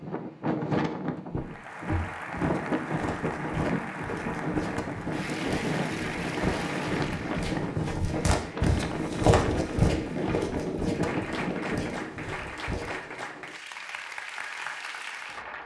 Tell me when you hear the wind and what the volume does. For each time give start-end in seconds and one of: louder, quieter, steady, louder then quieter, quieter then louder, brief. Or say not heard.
0.0-12.3 steady.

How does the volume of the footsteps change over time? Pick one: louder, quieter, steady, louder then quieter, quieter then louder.
louder then quieter.